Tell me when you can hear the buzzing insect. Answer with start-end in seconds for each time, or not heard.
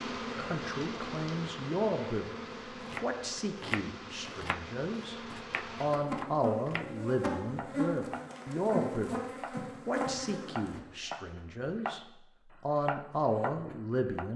0.0-10.8.